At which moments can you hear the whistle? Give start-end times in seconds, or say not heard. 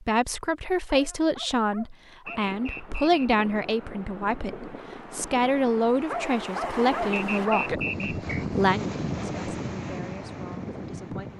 2.2-3.3, 7.1-8.4.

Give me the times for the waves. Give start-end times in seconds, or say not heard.
2.2-11.3.